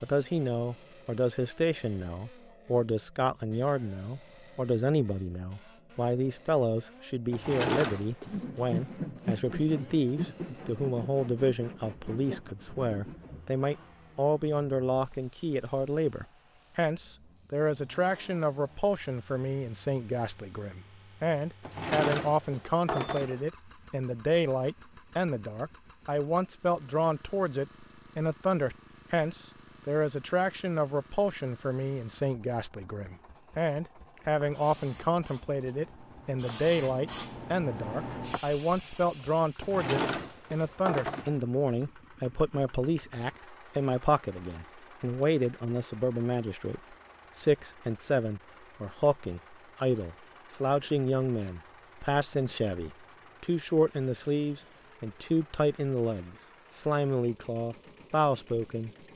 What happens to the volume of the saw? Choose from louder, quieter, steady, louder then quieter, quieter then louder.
quieter.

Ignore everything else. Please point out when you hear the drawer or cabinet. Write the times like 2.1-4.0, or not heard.
7.3-8.4, 21.6-23.4, 39.6-41.4.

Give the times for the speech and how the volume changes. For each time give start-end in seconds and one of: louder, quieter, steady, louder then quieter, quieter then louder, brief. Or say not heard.
0.0-58.9 steady.